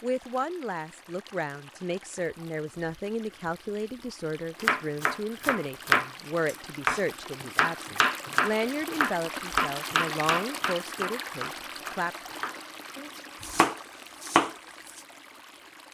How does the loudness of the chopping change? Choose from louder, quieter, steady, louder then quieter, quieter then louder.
quieter then louder.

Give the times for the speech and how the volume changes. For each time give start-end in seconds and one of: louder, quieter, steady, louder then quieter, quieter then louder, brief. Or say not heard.
0.0-12.2 steady.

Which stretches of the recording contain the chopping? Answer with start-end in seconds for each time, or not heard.
4.5-15.0.